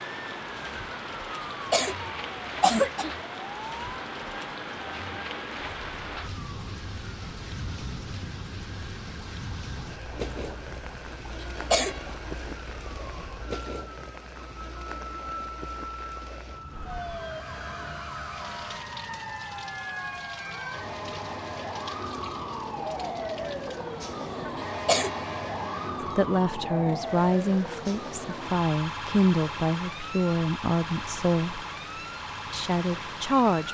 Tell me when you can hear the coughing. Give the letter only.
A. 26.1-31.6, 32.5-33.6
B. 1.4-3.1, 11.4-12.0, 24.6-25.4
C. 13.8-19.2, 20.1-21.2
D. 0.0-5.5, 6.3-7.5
B.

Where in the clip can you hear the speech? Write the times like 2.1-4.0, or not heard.
26.1-31.6, 32.5-33.6.